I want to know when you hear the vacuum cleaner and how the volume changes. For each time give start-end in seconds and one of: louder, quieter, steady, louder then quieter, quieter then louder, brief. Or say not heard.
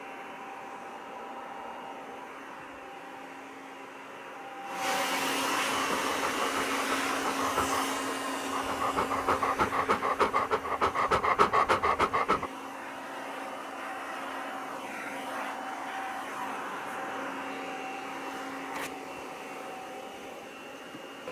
0.0-21.2 louder then quieter.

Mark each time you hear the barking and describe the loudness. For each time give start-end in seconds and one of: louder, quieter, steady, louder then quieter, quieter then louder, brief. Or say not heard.
5.7-12.5 louder.